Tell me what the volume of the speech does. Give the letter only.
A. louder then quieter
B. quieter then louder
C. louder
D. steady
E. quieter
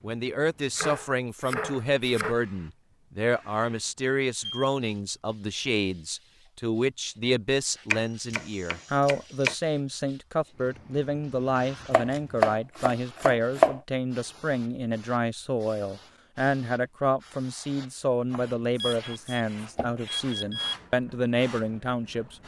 D.